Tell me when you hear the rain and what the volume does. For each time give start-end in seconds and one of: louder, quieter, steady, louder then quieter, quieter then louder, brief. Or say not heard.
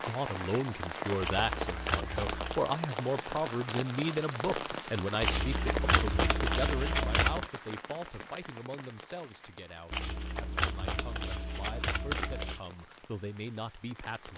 0.0-14.3 quieter.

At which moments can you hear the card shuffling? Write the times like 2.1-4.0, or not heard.
1.2-2.6, 5.2-7.5, 9.9-12.6.